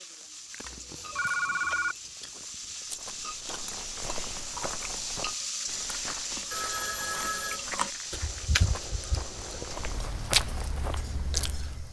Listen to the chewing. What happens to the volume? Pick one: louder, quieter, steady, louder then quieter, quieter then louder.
louder.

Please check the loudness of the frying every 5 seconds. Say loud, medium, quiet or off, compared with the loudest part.
loud, loud, medium.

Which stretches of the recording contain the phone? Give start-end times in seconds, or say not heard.
0.7-1.9, 6.5-7.6.